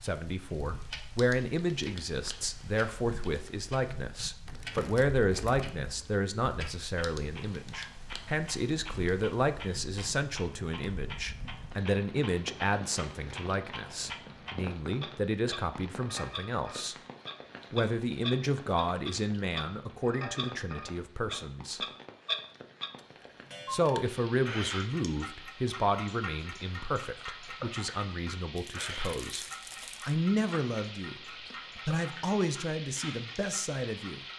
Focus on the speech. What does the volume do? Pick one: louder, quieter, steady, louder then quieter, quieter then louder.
steady.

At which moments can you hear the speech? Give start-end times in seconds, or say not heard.
0.0-16.9, 17.7-21.8, 23.7-29.4, 30.1-34.2.